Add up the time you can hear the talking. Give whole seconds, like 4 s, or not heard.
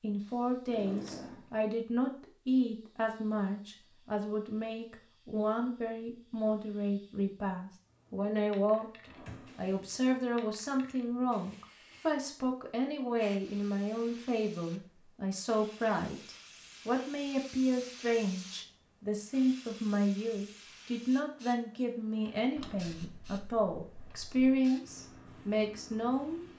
26 s.